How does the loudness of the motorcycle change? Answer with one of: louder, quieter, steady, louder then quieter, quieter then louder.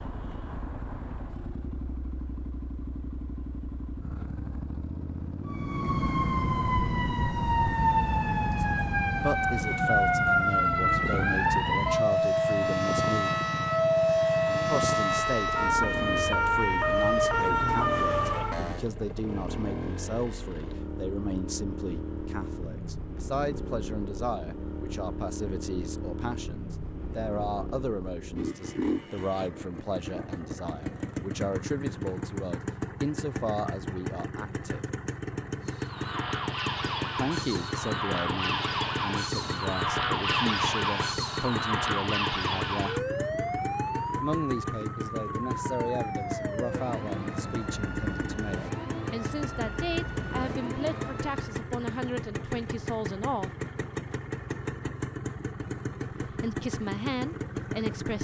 steady.